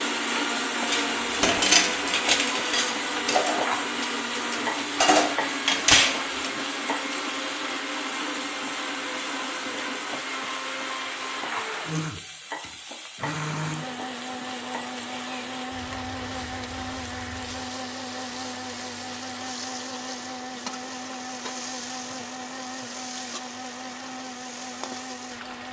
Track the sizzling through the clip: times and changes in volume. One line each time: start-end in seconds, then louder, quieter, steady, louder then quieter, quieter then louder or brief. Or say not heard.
0.0-25.6 quieter.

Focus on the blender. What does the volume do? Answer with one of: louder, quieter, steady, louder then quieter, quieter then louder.
quieter.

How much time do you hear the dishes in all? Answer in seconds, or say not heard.
6 s.